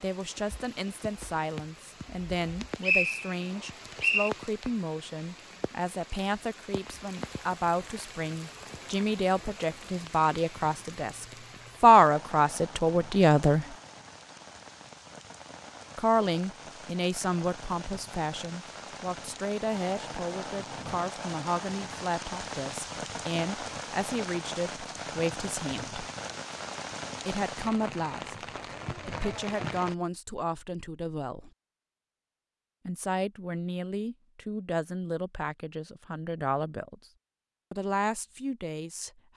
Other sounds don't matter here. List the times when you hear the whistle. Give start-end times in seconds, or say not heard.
2.4-4.3.